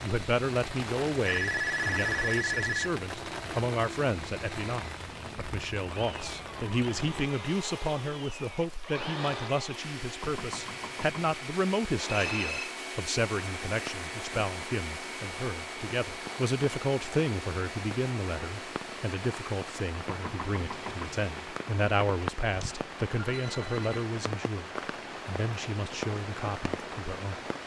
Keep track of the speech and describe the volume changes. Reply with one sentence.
The loudness of the speech stays about the same.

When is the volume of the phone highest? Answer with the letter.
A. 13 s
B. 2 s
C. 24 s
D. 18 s
B.